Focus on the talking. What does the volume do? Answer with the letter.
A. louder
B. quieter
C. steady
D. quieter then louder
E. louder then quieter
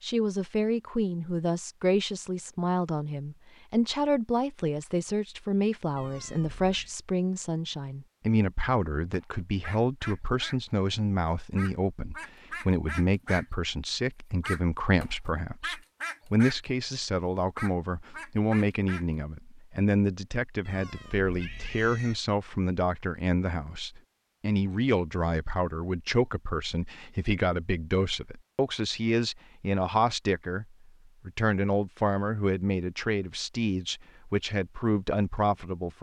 C.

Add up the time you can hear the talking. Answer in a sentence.
You can hear the talking for 36 seconds altogether.